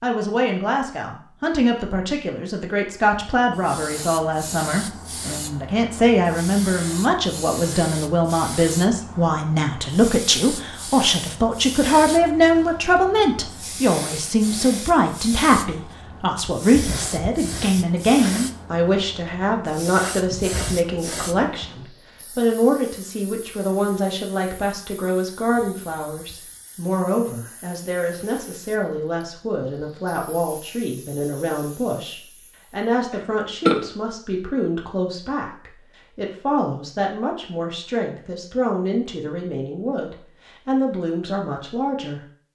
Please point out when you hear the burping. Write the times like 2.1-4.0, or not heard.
33.1-33.9.